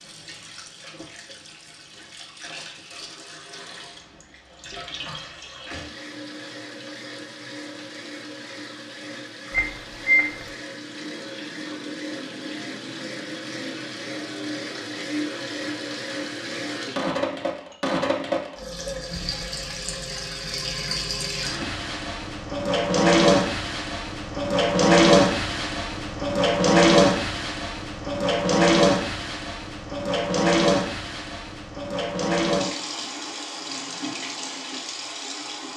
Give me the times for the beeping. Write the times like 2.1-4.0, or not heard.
9.5-10.4.